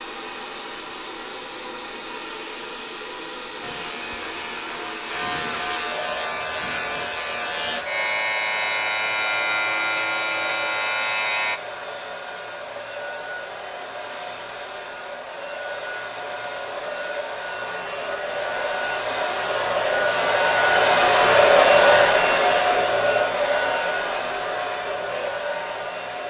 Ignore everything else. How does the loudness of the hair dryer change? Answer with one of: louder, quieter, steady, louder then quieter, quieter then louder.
louder.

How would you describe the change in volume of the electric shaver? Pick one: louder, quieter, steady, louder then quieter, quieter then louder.
louder.